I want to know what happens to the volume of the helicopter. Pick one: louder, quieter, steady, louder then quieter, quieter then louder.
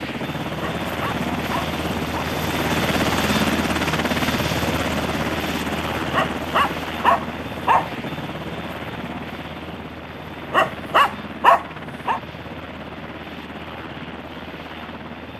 quieter.